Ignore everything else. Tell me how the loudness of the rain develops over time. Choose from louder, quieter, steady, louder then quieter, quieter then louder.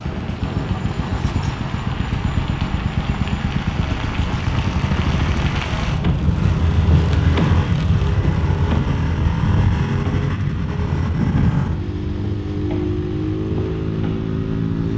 louder then quieter.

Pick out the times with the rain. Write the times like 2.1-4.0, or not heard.
0.0-14.9.